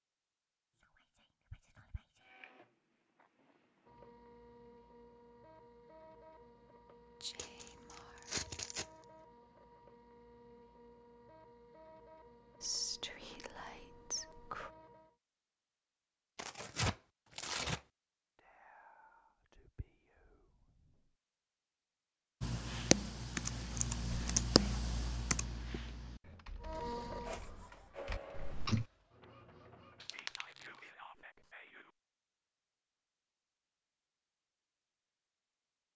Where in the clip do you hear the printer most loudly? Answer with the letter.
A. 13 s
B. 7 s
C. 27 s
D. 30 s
C.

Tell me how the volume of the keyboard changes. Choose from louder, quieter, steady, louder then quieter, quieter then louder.
quieter then louder.